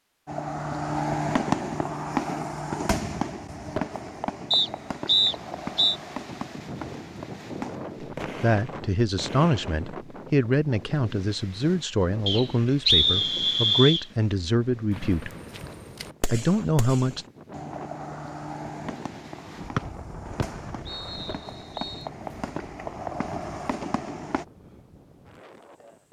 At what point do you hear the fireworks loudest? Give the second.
1 s.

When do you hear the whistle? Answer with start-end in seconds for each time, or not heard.
4.5-6.0, 12.2-14.1, 19.8-22.1.